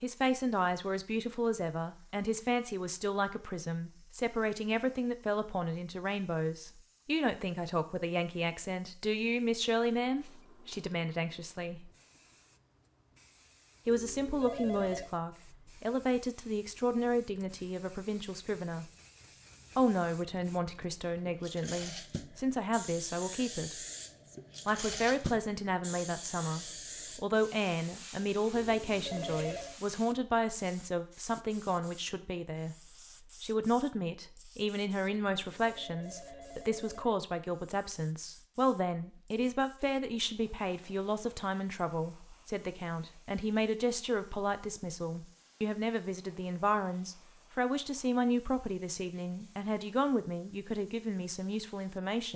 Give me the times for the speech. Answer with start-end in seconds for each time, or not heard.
0.0-11.9, 13.8-18.9, 19.8-23.9, 24.6-32.8, 33.4-52.3.